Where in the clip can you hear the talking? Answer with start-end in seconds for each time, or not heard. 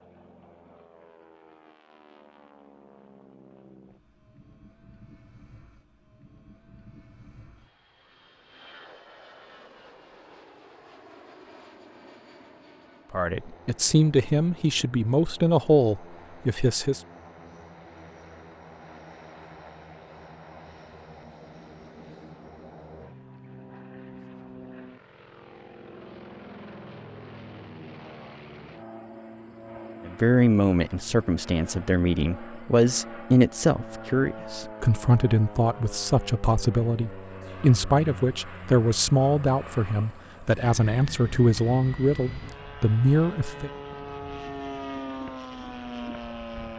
13.1-17.0, 30.1-43.7.